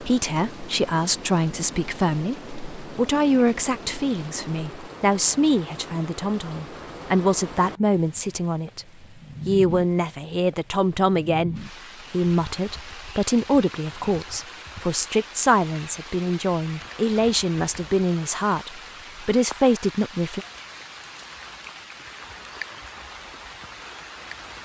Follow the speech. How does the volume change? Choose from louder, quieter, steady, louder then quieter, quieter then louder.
steady.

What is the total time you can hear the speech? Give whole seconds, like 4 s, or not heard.
20 s.